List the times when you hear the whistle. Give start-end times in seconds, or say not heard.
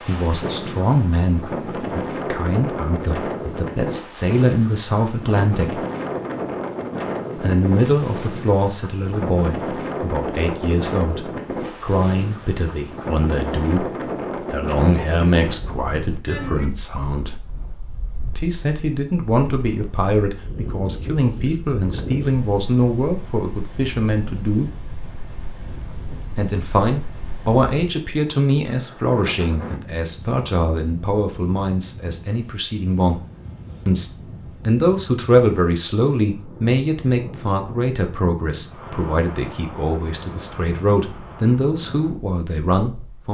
not heard.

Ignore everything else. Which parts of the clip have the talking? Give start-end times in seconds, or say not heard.
0.1-5.8, 7.3-17.4, 18.4-24.7, 26.3-33.2, 33.9-43.3.